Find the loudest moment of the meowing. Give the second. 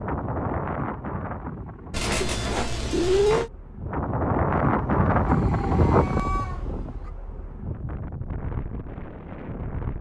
3 s.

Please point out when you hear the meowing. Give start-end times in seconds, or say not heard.
1.9-3.5, 5.2-7.1.